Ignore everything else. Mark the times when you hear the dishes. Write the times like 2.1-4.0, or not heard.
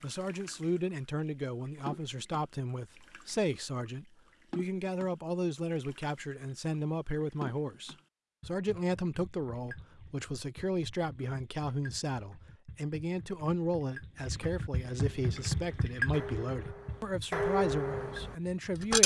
15.1-19.0.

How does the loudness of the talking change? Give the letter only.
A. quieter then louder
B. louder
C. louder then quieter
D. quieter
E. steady
E.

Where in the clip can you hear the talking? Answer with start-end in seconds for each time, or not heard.
0.0-19.0.